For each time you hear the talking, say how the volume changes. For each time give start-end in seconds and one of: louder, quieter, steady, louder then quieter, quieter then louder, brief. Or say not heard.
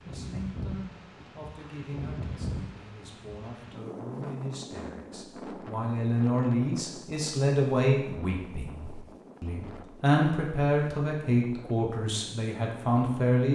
0.0-13.5 louder.